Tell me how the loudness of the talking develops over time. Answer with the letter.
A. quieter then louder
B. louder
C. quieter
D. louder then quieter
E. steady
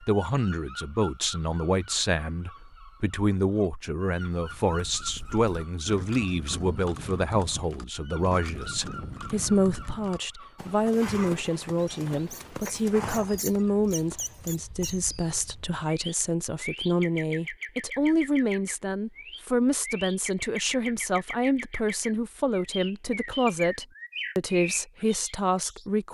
E.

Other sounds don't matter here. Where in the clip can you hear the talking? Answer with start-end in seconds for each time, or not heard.
0.0-26.0.